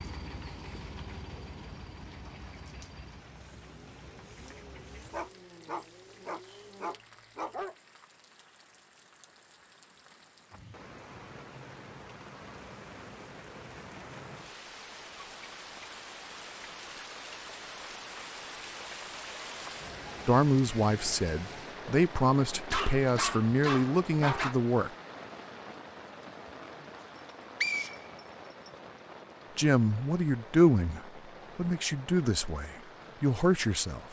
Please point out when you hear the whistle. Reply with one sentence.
The whistle can be heard from 27.1 to 28.7 s.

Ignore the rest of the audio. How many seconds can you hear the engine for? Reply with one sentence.
You can hear the engine for 7 seconds altogether.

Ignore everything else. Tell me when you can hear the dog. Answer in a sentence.
The dog can be heard from 5.1 to 7.8 s and from 22.7 to 24.6 s.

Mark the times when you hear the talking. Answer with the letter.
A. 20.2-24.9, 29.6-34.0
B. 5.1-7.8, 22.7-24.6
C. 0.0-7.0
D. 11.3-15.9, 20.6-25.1
A.